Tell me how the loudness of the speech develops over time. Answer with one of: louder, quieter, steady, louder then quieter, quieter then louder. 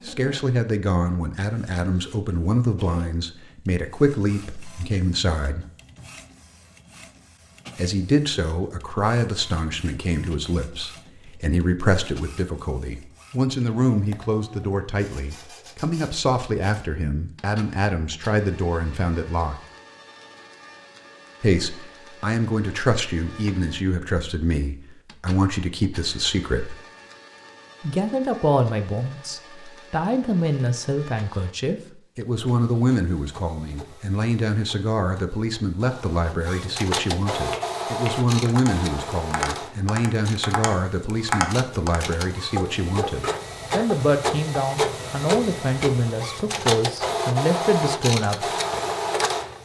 steady.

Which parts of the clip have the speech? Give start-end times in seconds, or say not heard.
0.1-5.7, 7.8-19.6, 21.4-26.8, 27.8-48.5.